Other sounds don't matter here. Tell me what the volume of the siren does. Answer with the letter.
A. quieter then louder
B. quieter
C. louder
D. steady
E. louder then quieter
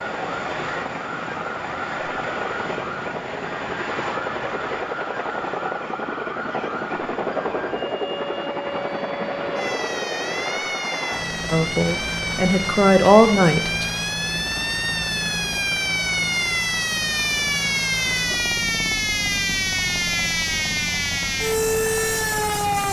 C.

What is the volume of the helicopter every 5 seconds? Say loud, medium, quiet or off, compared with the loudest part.
loud, loud, loud, medium, medium.